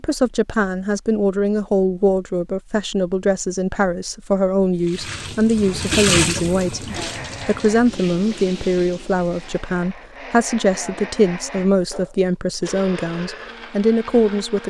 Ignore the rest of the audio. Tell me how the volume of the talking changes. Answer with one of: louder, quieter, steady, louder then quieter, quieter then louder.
steady.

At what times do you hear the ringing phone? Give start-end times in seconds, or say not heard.
not heard.